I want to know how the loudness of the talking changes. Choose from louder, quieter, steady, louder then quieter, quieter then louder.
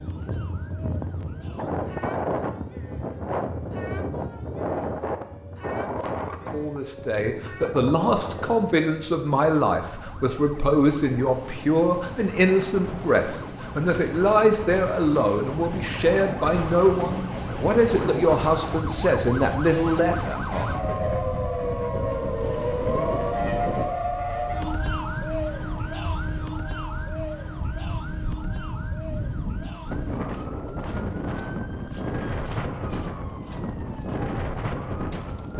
steady.